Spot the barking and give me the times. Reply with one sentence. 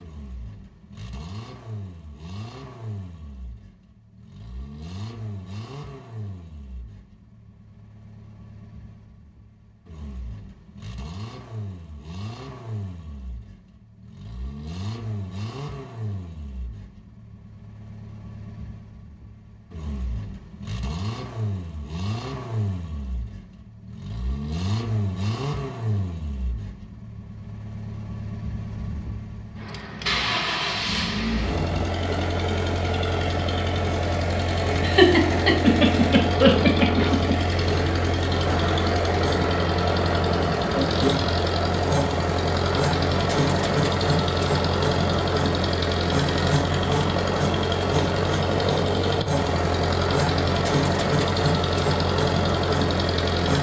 The barking can't be heard in this clip.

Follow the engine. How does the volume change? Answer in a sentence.
The volume of the engine goes up.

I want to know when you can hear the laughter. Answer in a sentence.
You can hear the laughter from 34.8 to 37.4 s.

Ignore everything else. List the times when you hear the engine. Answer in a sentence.
You can hear the engine from 0.0 to 53.5 s.